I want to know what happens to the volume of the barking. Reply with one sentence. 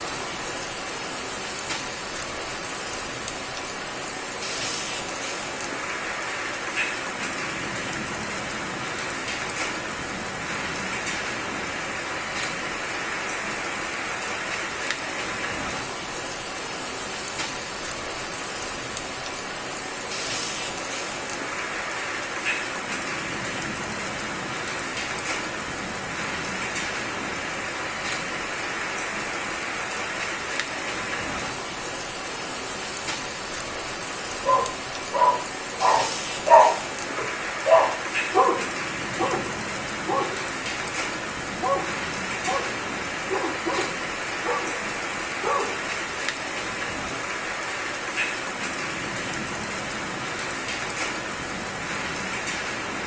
The loudness of the barking goes down.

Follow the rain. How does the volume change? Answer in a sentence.
The volume of the rain stays about the same.